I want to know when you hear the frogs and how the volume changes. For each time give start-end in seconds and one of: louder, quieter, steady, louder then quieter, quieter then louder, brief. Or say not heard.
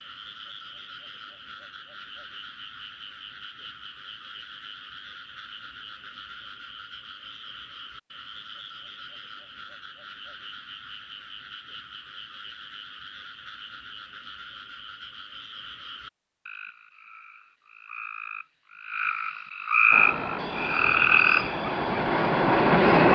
0.0-23.1 louder.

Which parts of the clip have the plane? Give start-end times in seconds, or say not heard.
19.9-23.1.